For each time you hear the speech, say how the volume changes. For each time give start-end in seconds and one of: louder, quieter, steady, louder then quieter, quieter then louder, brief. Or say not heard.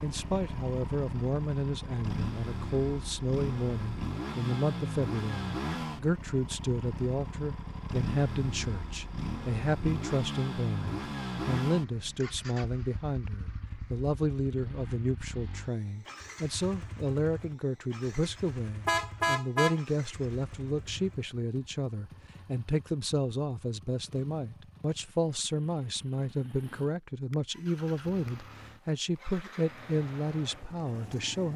0.0-31.5 steady.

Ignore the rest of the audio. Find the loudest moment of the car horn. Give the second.
19 s.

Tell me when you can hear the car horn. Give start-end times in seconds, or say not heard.
18.9-21.1.